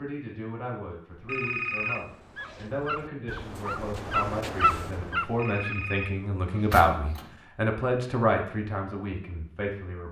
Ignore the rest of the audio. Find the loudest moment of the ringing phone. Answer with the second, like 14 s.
2 s.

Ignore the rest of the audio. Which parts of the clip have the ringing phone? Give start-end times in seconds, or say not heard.
1.2-2.7, 5.3-6.8.